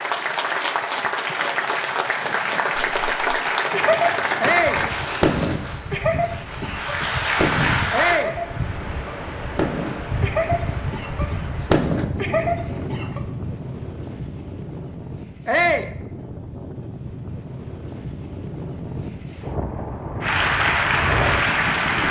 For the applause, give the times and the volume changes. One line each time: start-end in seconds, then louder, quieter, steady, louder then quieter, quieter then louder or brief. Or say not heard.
0.0-8.2 quieter then louder
20.2-22.0 brief.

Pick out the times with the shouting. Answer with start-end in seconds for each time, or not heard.
4.4-4.8, 7.9-8.3, 15.4-15.9.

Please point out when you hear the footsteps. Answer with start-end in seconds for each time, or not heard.
not heard.